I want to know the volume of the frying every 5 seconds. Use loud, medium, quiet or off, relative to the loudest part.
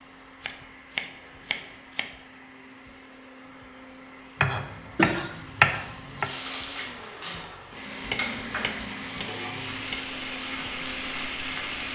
off, loud, loud.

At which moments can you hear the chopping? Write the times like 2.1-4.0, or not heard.
0.4-2.1, 4.4-6.3, 8.0-10.0.